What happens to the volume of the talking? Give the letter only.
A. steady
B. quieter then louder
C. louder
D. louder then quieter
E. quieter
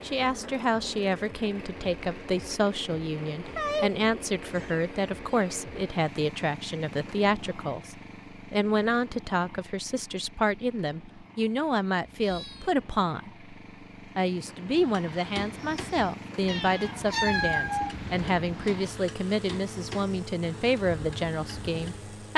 A.